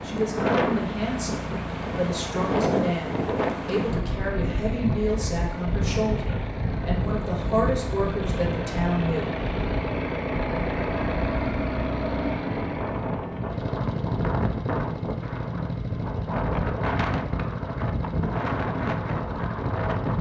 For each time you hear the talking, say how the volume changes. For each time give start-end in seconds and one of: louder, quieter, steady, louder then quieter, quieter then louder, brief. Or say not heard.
0.0-9.4 steady.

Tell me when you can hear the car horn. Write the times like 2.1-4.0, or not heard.
not heard.